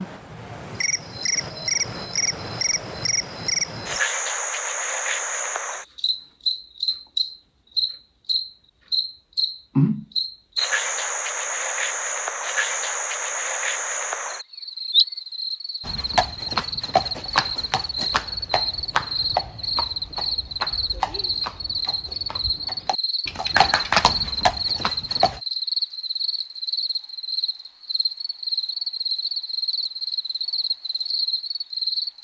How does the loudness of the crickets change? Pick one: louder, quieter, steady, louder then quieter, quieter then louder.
steady.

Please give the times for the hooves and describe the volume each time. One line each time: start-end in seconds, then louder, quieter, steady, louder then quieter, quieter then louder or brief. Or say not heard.
15.8-25.4 quieter then louder.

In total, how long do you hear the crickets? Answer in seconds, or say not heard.
32 s.